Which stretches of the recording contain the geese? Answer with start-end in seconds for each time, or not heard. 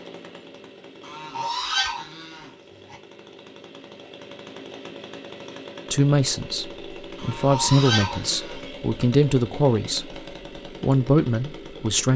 1.0-3.0, 7.2-8.6.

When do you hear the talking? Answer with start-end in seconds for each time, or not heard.
5.9-10.2, 10.8-12.1.